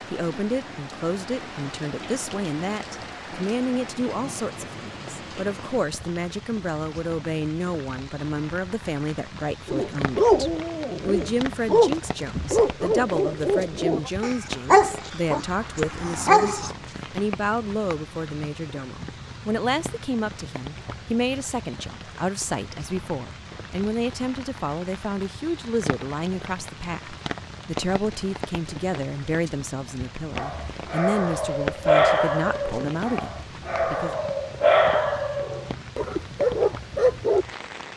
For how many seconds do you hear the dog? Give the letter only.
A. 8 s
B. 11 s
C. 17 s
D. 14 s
D.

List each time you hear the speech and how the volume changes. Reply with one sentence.
You can hear the speech from 0.1 to 34.1 s, at a steady volume.